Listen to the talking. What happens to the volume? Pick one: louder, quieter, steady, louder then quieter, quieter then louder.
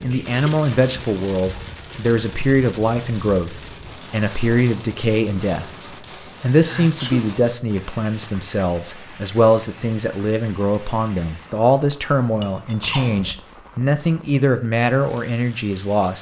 steady.